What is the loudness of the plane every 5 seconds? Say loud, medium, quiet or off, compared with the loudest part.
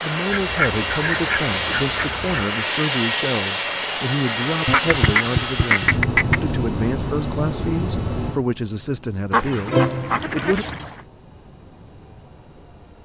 loud, loud, quiet.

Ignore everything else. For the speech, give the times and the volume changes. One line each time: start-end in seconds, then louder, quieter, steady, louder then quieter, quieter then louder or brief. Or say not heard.
0.0-10.7 steady.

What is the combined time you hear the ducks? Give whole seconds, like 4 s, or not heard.
6 s.